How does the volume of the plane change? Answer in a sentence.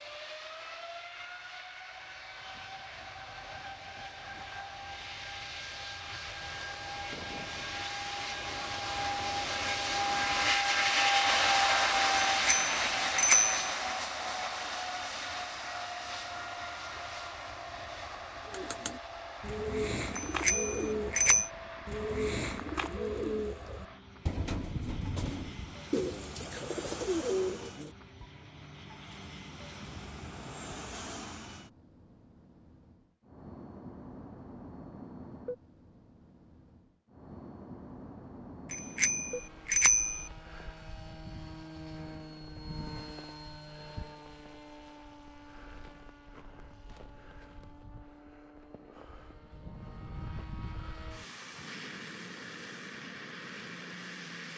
The loudness of the plane goes down.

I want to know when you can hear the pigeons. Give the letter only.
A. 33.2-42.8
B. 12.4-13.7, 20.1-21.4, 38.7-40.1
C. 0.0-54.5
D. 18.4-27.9
D.